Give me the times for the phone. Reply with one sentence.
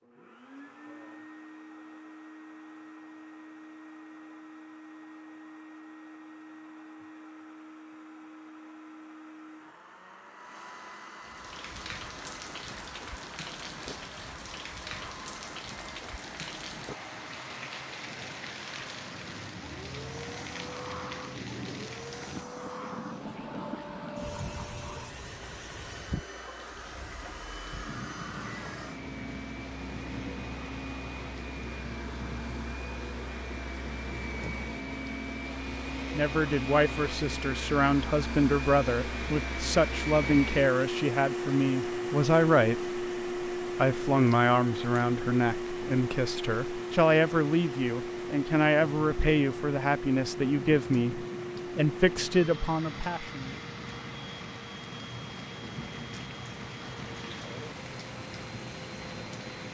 You can't hear the phone here.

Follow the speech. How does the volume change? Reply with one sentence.
The loudness of the speech stays about the same.